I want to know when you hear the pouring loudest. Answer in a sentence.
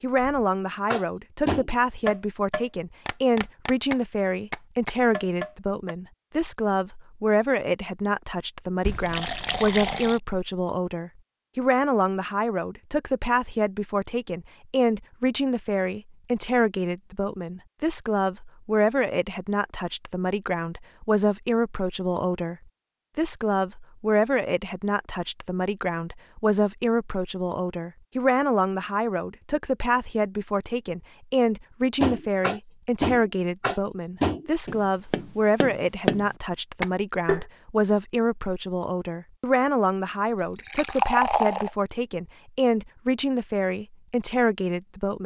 The loudest moment of the pouring is at 41 seconds.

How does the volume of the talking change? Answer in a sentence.
The loudness of the talking stays about the same.